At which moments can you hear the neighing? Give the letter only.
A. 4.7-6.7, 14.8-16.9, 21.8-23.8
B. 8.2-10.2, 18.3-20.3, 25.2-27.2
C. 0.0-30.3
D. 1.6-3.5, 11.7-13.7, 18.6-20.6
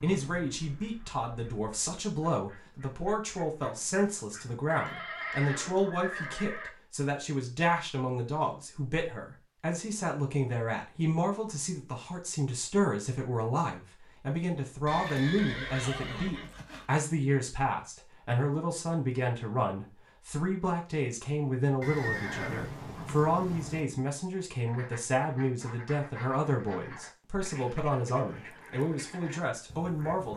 A.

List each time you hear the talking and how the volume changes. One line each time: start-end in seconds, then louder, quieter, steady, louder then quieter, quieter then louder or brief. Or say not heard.
0.0-30.3 steady.